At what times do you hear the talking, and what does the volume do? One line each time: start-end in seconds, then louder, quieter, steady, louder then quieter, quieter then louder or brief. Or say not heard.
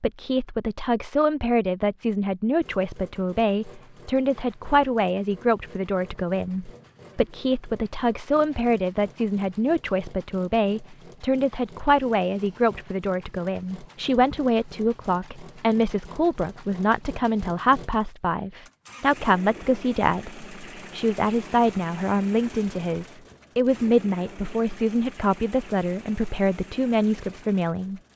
0.0-28.0 steady.